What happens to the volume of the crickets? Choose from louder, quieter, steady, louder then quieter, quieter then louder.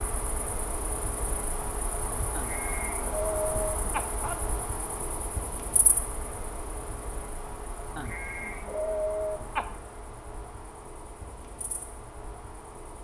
quieter.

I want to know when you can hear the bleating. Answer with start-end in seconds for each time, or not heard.
2.3-4.3, 8.0-9.7.